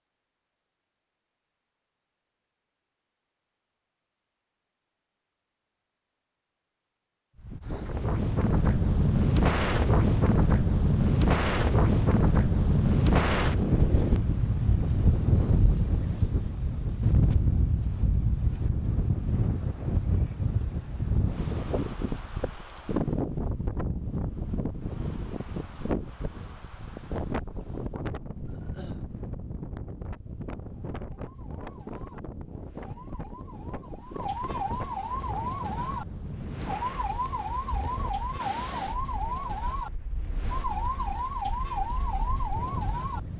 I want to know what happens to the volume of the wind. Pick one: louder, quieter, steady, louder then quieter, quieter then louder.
quieter.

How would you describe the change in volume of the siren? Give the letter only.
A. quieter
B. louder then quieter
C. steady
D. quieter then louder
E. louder
E.